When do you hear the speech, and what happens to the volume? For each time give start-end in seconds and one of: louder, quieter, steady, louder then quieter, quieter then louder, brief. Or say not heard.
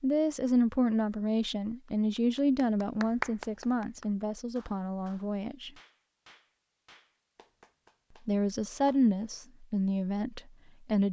0.0-5.7 quieter
8.2-11.0 brief.